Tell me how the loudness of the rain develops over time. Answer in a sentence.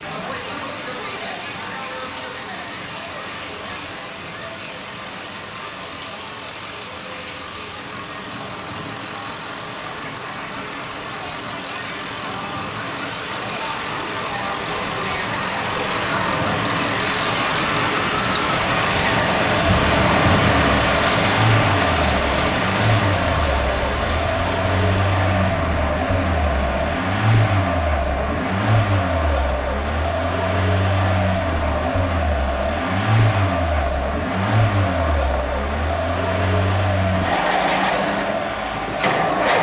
The loudness of the rain goes up, then down.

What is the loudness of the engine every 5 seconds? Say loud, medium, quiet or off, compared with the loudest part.
quiet, quiet, medium, medium, loud, loud, loud, loud.